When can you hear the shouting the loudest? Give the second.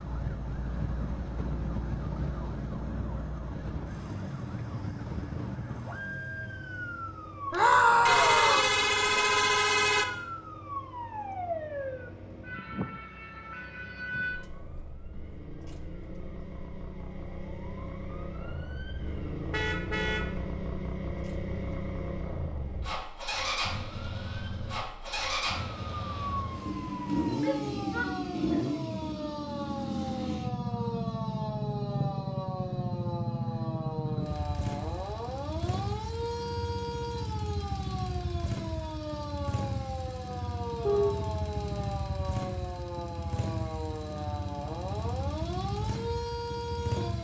8 s.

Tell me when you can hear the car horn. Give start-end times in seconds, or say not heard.
8.1-10.1, 19.5-20.4, 40.8-41.2.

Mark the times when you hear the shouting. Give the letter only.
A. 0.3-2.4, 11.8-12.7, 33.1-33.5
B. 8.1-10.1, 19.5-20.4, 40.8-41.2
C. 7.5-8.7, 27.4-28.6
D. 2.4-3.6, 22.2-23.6
C.